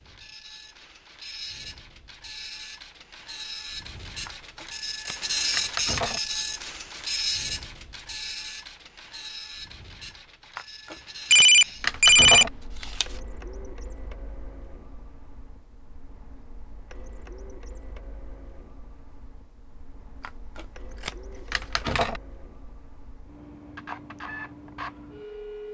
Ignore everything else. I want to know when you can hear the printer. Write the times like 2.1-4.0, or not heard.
0.0-25.6.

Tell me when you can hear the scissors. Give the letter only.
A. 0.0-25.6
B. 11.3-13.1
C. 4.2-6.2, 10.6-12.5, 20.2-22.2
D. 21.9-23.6
C.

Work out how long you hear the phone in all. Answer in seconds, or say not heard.
2 s.